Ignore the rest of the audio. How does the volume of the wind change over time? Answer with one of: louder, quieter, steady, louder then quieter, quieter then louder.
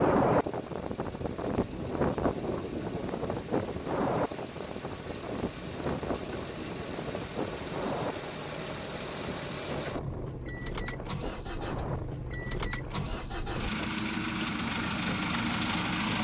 quieter.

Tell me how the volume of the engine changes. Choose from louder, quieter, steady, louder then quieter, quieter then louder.
louder.